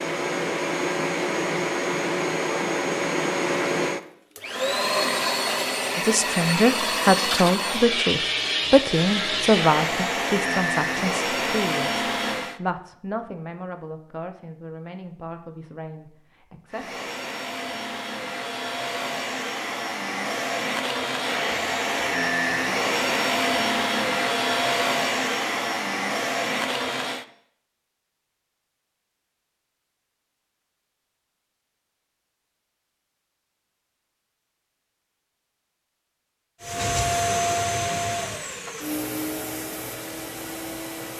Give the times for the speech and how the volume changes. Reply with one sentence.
You can hear the speech from 6.0 to 17.0 s, getting quieter.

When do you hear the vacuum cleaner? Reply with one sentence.
The vacuum cleaner can be heard from 0.0 to 12.6 s, from 16.7 to 27.2 s and from 36.6 to 41.1 s.